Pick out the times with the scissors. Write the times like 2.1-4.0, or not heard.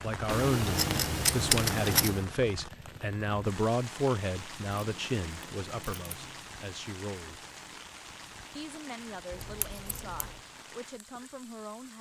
0.2-2.2, 4.8-6.4, 9.3-10.4.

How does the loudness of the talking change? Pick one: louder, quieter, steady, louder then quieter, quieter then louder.
quieter.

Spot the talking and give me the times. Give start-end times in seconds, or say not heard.
0.0-7.5, 8.6-11.9.